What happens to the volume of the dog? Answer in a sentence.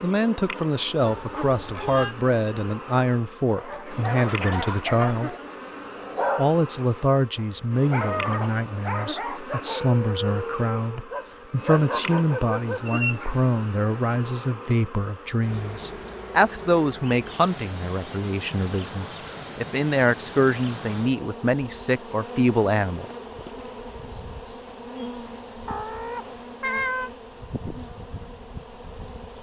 The volume of the dog stays about the same.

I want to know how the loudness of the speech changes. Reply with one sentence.
The loudness of the speech stays about the same.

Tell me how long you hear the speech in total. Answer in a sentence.
You can hear the speech for 22 seconds altogether.